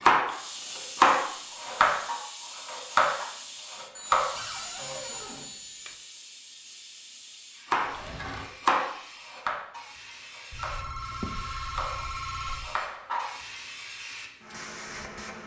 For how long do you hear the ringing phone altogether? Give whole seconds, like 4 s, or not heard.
4 s.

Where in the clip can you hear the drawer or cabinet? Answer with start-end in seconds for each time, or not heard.
4.3-5.5, 7.8-8.5.